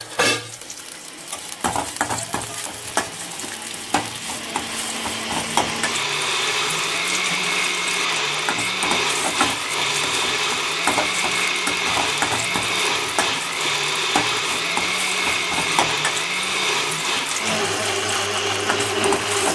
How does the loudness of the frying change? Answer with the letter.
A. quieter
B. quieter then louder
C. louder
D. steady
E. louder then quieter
D.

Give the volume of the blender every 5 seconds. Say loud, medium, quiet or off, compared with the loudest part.
quiet, loud, loud, loud.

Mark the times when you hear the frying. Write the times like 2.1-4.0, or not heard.
0.0-19.4.